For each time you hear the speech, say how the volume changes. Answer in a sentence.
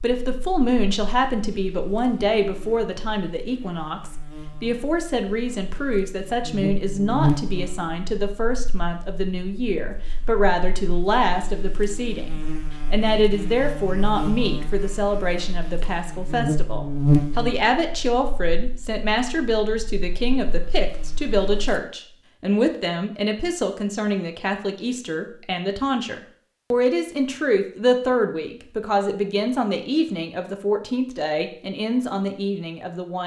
You can hear the speech from 0.0 to 33.2 s, at a steady volume.